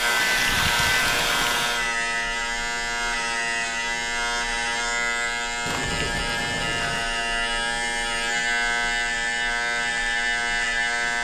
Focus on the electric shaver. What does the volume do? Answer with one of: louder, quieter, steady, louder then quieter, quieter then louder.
steady.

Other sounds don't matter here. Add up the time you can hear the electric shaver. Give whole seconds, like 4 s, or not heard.
11 s.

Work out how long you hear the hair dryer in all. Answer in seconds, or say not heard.
2 s.